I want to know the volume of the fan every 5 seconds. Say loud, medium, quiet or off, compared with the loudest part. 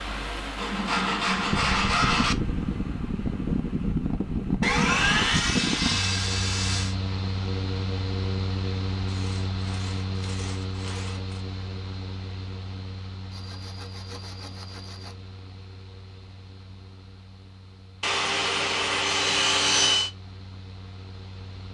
loud, loud, medium, quiet, quiet.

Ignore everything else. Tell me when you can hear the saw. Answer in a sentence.
The saw can be heard from 0.6 to 2.4 s, from 4.6 to 7.0 s, from 9.1 to 11.4 s, from 13.3 to 15.2 s and from 18.0 to 20.1 s.